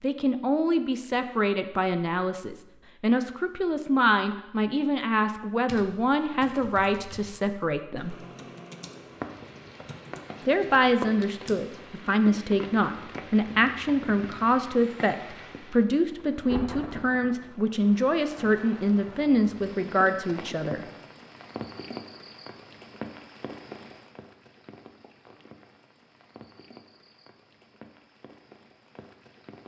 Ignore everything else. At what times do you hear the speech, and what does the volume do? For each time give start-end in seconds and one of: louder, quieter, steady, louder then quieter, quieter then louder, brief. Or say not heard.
0.0-8.2 steady
10.4-20.9 steady.